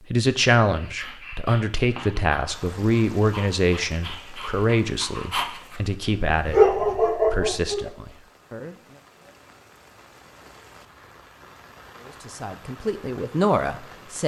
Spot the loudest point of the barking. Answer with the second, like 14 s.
7 s.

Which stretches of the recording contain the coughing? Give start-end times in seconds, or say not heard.
not heard.